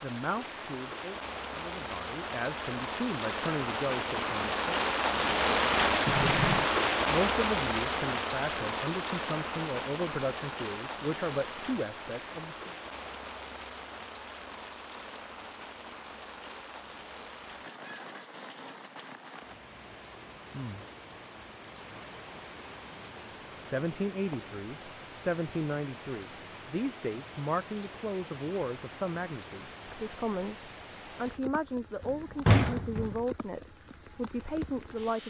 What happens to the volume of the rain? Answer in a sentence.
The volume of the rain goes down.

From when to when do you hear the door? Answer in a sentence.
The door can be heard from 6.0 to 6.7 s and from 32.0 to 33.1 s.